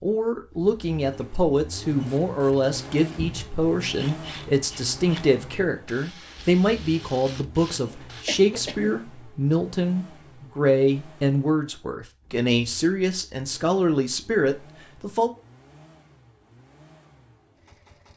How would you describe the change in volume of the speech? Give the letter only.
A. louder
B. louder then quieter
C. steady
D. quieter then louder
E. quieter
C.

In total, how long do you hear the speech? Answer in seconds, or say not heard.
15 s.